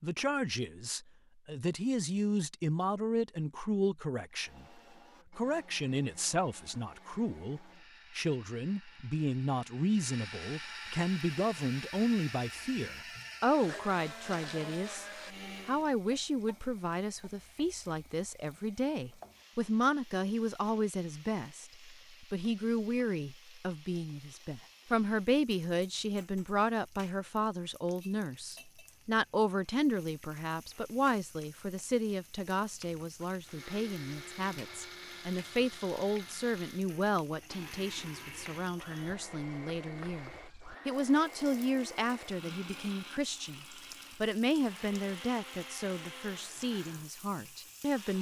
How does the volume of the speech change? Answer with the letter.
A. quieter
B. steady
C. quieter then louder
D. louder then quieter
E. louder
B.